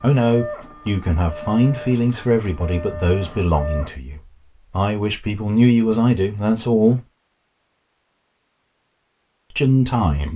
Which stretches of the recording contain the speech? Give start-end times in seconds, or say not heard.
0.0-7.0, 9.5-10.3.